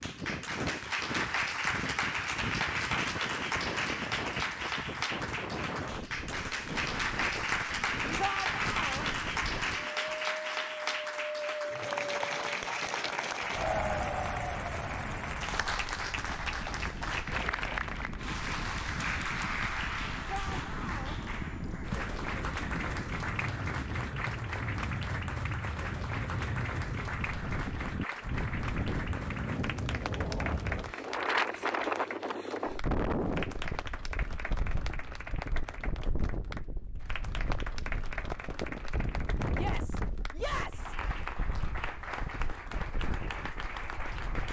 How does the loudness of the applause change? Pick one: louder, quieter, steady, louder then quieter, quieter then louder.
quieter.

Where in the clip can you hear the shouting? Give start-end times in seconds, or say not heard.
8.2-9.1, 20.2-21.1, 39.5-41.0.